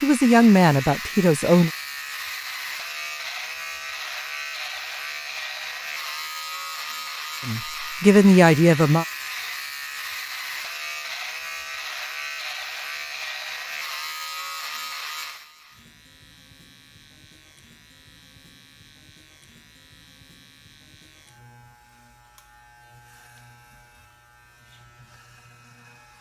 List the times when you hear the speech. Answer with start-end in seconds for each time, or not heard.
0.0-1.7, 7.5-9.1.